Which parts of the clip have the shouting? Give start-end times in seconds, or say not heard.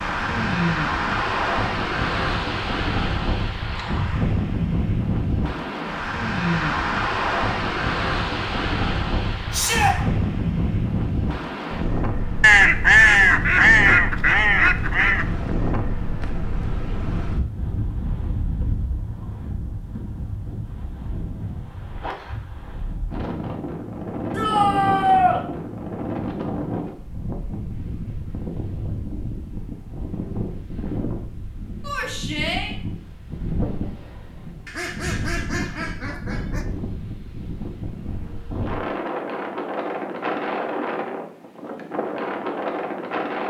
9.5-9.9, 24.3-25.4, 31.8-32.8.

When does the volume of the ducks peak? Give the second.
13 s.